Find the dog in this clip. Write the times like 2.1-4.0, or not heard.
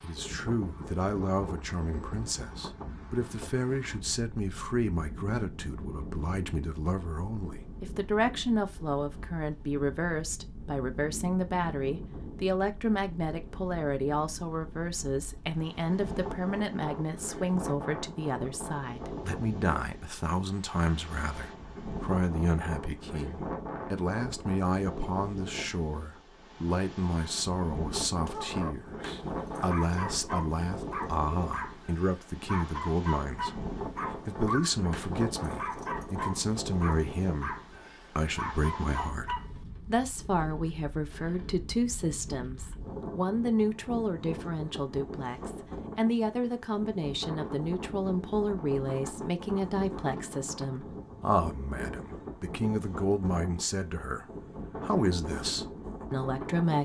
28.2-39.5.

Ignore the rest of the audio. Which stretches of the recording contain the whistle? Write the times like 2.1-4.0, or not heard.
not heard.